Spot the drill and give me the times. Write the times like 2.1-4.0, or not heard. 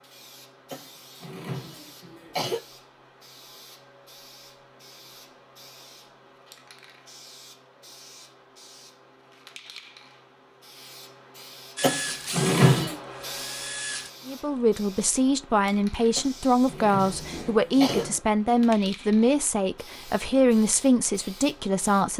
11.8-14.1.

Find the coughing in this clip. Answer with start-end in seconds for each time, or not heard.
0.7-2.6, 11.8-12.9, 16.1-18.1.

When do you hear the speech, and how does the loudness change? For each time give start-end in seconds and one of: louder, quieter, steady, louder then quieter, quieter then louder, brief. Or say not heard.
14.2-22.1 steady.